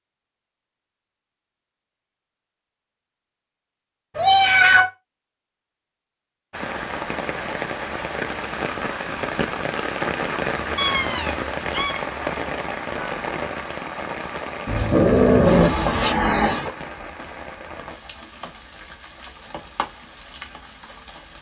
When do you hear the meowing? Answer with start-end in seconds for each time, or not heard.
4.2-4.8, 10.8-12.0, 14.7-16.7.